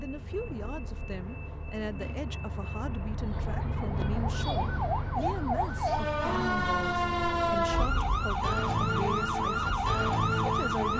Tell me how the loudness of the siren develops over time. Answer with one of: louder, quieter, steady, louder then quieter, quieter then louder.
louder.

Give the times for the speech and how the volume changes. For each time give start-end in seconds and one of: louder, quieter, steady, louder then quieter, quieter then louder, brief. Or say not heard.
0.0-10.9 steady.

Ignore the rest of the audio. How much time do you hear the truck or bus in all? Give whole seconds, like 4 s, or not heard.
11 s.